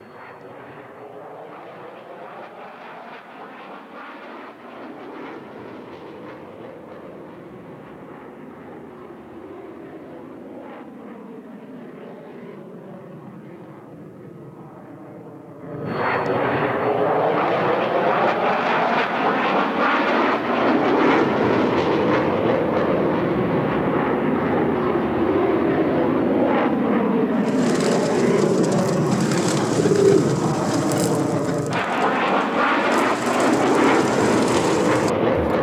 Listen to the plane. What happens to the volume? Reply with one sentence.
The volume of the plane goes up.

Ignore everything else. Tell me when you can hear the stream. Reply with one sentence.
The stream can't be heard in this clip.